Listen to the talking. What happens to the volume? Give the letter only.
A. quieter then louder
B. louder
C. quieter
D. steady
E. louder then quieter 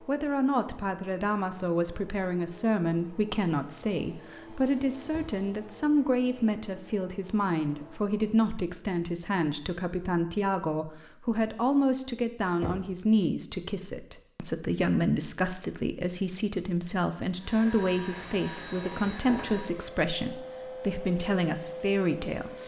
D.